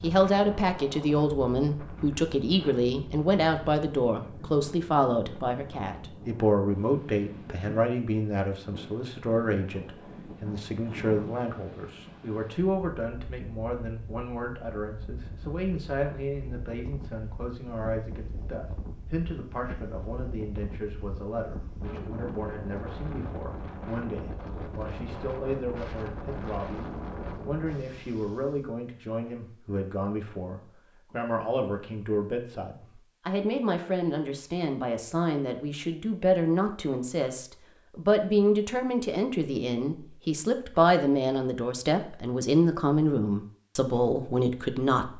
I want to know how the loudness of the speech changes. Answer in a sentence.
The volume of the speech goes down, then up.